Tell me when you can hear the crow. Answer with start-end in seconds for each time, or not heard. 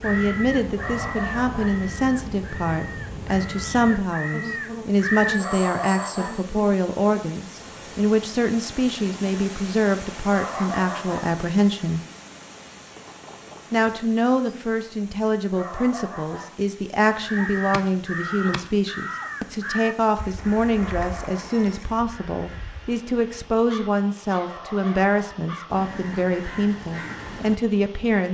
0.0-5.4, 17.2-27.6.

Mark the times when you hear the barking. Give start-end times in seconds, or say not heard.
0.8-1.8, 5.3-6.5, 10.3-11.3, 15.5-16.6, 20.7-21.6, 24.4-25.4.